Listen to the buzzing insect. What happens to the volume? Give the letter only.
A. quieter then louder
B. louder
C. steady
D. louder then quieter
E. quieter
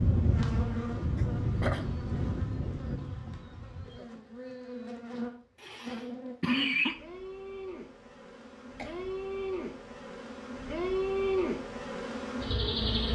A.